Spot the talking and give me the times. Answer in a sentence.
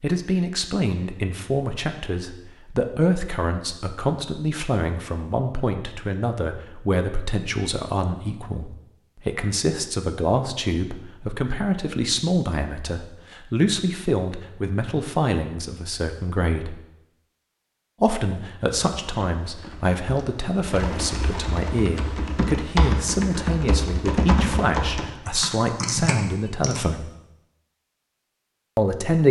The talking can be heard from 0.0 to 16.8 s, from 18.0 to 27.1 s and from 28.8 to 29.2 s.